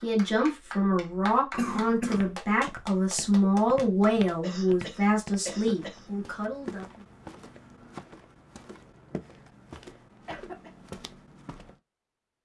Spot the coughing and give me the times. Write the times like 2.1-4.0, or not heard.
1.6-2.3, 4.4-6.1, 10.2-10.7.